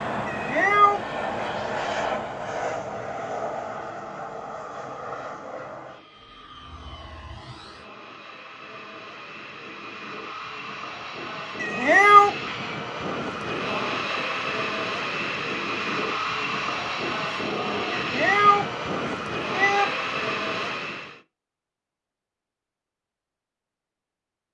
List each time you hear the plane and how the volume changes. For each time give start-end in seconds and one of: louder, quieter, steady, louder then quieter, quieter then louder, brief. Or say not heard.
0.0-21.2 quieter then louder.